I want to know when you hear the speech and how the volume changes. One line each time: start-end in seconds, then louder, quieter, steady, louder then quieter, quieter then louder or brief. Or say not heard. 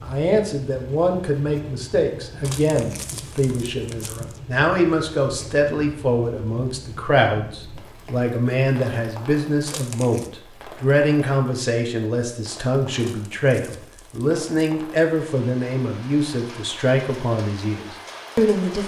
0.0-18.8 steady.